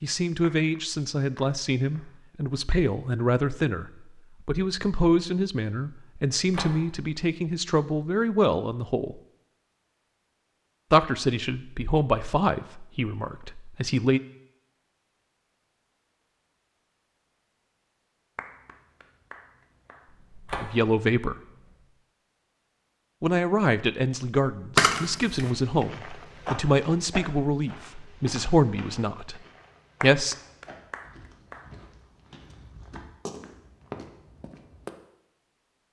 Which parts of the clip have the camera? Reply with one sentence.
The camera can be heard from 6.1 to 7.2 s, from 20.1 to 21.6 s and from 24.8 to 25.4 s.